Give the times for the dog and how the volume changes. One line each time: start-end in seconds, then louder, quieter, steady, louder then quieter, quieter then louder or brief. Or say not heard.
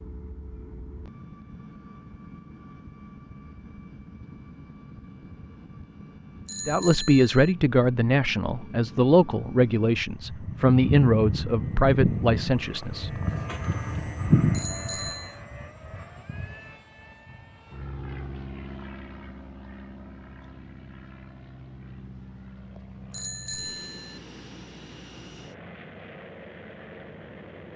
not heard.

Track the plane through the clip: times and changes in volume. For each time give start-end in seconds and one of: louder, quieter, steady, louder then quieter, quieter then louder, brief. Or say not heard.
0.0-27.7 louder then quieter.